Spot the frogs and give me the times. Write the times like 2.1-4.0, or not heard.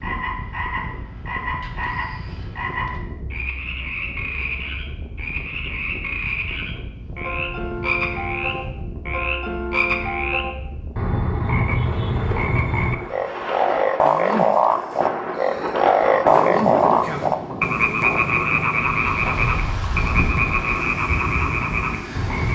0.0-22.5.